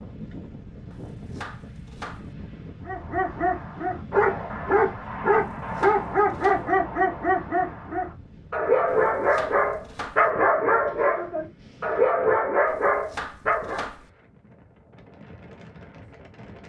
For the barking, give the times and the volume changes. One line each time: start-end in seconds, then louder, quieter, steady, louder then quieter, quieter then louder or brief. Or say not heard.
2.9-13.8 steady.